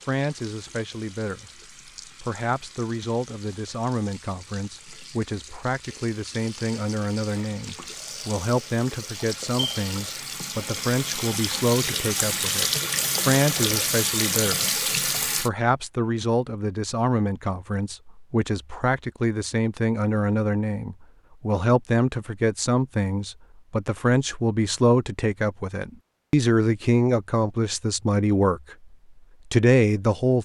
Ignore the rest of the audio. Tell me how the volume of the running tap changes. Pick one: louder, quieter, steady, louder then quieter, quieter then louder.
louder.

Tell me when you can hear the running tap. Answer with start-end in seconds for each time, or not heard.
0.0-15.5.